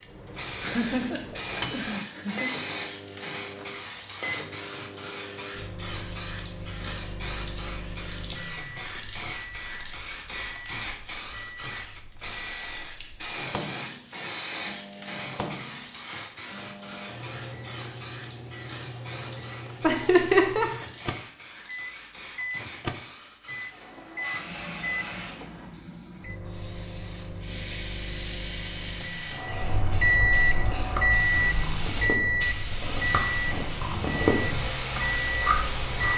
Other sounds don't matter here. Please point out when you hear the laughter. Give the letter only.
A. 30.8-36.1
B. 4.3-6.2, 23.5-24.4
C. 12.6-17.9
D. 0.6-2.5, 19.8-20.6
D.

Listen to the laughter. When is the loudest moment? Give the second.
20 s.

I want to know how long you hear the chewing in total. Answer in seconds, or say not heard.
5 s.